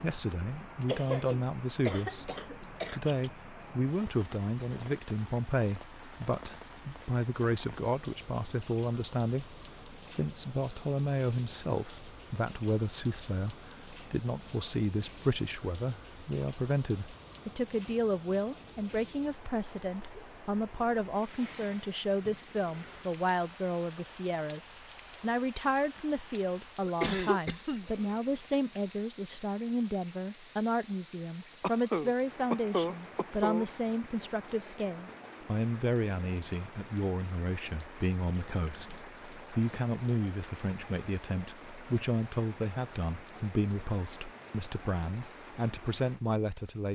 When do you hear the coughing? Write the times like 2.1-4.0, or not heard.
0.8-3.0, 26.9-27.9, 31.6-33.6.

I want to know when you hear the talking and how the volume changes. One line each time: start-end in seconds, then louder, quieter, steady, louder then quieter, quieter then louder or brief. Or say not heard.
0.0-46.9 steady.